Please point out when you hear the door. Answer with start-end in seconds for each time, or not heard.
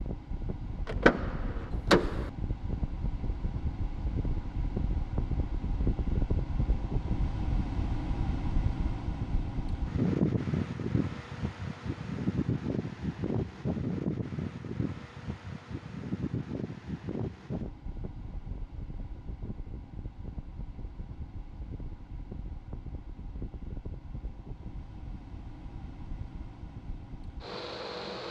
0.8-2.3.